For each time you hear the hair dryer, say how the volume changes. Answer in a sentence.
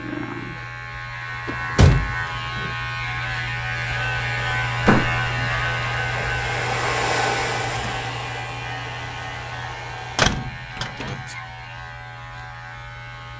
The hair dryer can be heard from 3.8 to 10.3 s, getting louder then quieter.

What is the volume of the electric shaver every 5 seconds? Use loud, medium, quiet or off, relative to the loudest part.
loud, loud, medium.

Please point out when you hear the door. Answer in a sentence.
You can hear the door from 1.4 to 2.7 s, from 4.8 to 5.3 s and from 10.2 to 11.2 s.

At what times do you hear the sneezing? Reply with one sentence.
The sneezing can be heard from 10.8 to 11.6 s.